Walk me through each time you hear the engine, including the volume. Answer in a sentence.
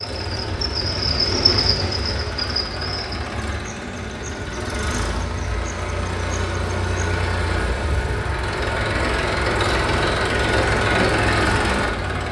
The engine can be heard from 0.0 to 12.2 s, getting louder.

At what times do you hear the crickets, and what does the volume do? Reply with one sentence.
You can hear the crickets from 0.0 to 7.0 s, getting quieter.